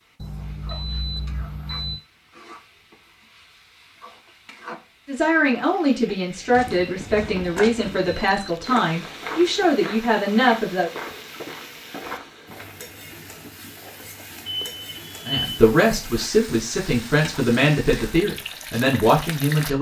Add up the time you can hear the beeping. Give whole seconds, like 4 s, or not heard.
4 s.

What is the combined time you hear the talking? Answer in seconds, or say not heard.
10 s.